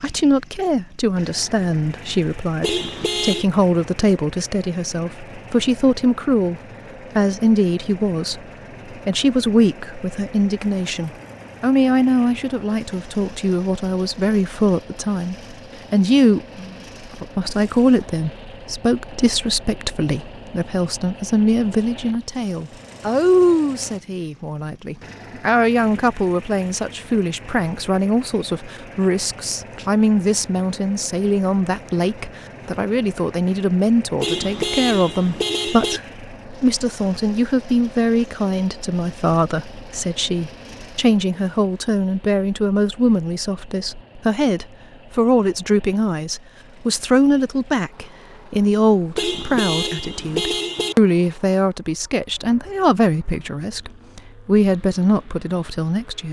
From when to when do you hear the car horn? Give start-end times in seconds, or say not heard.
2.6-3.5, 34.2-36.0, 49.1-51.0.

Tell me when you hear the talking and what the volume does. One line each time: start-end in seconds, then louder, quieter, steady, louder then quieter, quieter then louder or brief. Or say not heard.
0.0-56.2 steady.